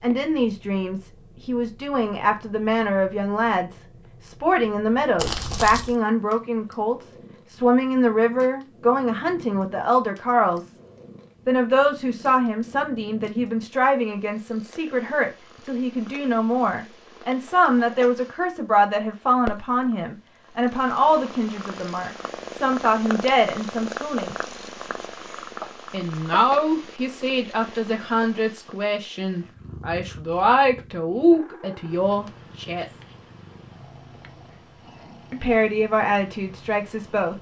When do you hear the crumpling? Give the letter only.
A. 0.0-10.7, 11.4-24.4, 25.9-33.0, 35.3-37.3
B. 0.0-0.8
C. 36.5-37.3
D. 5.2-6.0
D.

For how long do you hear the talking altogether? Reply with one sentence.
The talking can be heard for 33 seconds in total.